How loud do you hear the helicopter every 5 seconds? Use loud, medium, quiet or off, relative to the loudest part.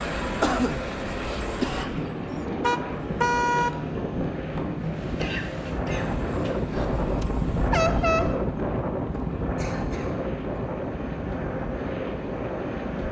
loud, medium, loud.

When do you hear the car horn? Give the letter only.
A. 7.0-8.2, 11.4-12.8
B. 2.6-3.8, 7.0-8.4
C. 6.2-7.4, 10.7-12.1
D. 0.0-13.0
B.